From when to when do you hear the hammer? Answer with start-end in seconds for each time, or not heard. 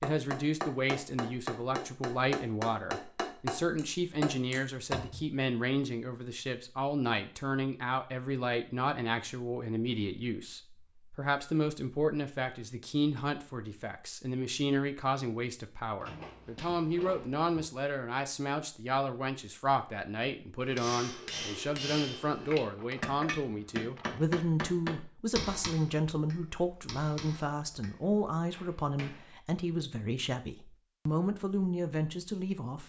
0.0-5.0, 20.6-29.4.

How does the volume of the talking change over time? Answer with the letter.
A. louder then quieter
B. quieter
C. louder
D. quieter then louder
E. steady
E.